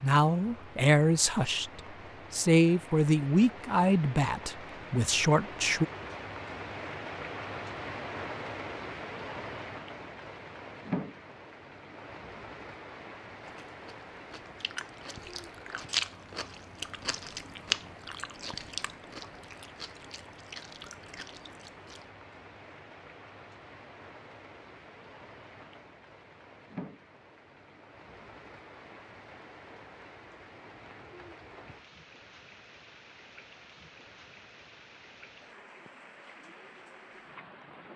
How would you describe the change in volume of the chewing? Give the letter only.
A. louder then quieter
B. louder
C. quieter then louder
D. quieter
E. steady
A.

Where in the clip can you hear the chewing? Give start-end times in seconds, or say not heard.
13.4-22.1.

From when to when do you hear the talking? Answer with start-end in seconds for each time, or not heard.
0.0-5.8.